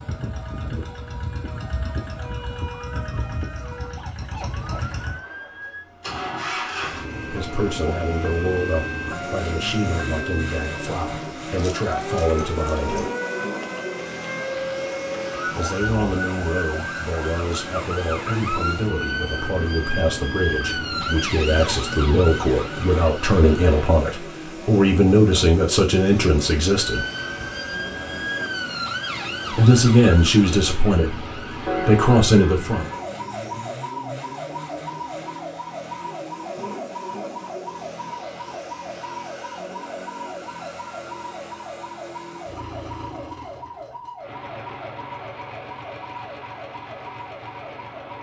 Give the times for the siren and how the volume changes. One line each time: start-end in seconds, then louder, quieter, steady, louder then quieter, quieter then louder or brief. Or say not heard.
0.0-24.0 louder
26.8-48.1 quieter.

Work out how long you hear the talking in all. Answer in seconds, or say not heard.
21 s.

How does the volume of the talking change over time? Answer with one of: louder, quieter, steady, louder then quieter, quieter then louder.
louder.